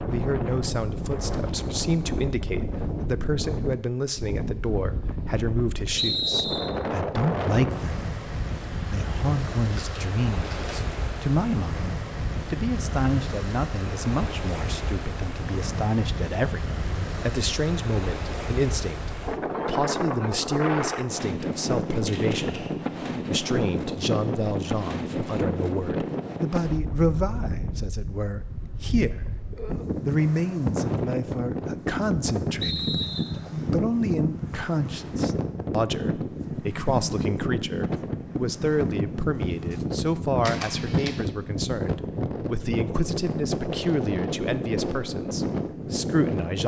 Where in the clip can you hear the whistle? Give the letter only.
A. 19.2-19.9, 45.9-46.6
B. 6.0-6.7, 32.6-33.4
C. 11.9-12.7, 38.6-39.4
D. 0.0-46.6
B.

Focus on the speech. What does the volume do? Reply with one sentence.
The loudness of the speech stays about the same.